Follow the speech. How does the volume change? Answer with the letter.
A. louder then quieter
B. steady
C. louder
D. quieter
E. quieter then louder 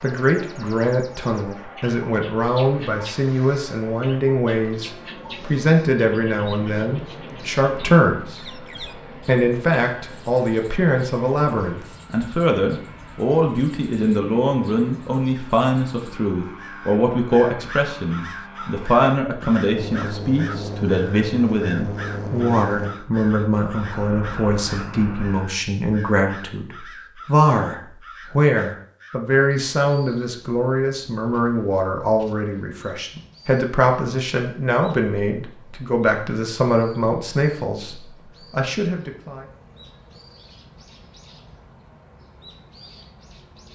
B.